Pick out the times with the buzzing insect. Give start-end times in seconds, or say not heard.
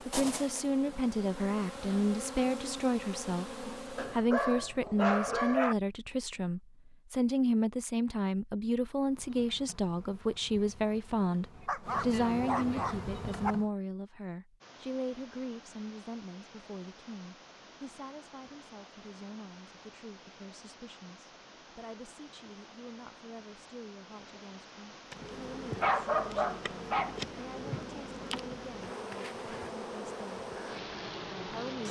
0.0-4.2, 9.0-13.7, 25.1-31.8.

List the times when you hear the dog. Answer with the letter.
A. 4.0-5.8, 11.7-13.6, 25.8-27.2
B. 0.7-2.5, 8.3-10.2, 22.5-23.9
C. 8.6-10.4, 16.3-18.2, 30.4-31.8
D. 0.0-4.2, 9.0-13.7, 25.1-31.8
A.